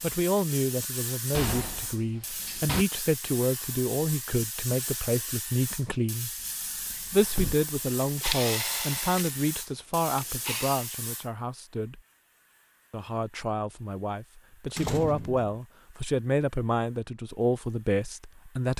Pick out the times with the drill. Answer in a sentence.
The drill can be heard from 8.0 to 10.9 s.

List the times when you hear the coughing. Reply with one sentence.
You can't hear the coughing here.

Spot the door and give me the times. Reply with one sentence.
You can hear the door from 1.3 to 2.9 s, from 6.3 to 7.5 s and from 14.8 to 15.5 s.